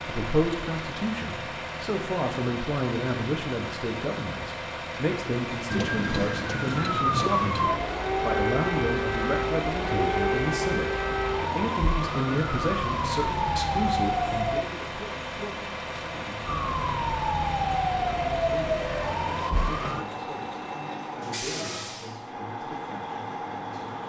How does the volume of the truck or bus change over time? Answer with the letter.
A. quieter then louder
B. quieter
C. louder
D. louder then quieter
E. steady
E.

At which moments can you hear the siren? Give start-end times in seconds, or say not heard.
5.7-14.7, 16.4-20.1.